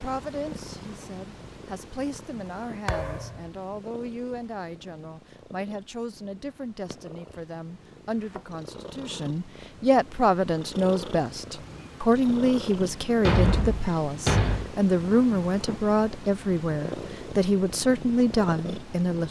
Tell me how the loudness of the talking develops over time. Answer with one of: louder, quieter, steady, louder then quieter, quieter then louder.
louder.